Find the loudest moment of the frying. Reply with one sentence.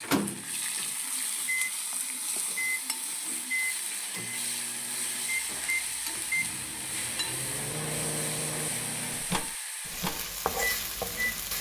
The volume of the frying peaks at 11 seconds.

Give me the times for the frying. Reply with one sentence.
The frying can be heard from 0.0 to 11.5 s.